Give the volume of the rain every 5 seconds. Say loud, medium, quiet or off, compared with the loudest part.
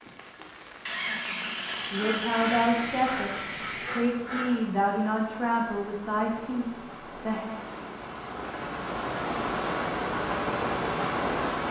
quiet, medium, loud.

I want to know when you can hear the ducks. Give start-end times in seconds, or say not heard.
1.9-4.7.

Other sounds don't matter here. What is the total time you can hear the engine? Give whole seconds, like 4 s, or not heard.
4 s.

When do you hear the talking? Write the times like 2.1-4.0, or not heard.
1.9-7.6.